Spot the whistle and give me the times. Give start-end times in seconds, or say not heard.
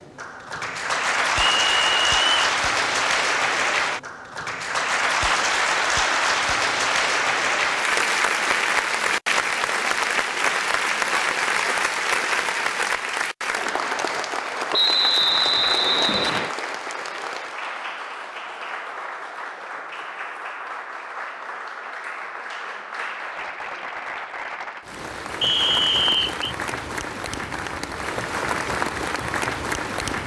1.6-2.5, 14.7-16.6, 25.4-26.4.